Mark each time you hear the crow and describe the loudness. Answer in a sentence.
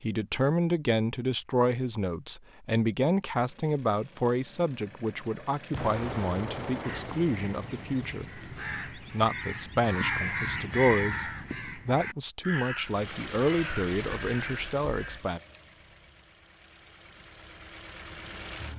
The crow can be heard from 6.8 to 15.2 s, getting louder then quieter.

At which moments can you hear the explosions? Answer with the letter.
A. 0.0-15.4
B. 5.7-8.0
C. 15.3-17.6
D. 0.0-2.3
B.